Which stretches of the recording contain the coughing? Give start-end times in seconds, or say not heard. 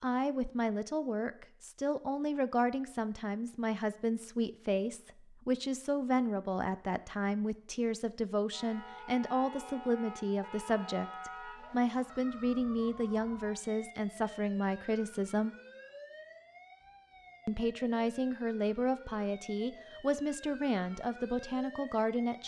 not heard.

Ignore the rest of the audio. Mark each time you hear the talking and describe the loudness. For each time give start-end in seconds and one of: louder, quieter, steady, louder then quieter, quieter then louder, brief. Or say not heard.
0.0-15.6 steady
17.4-22.4 steady.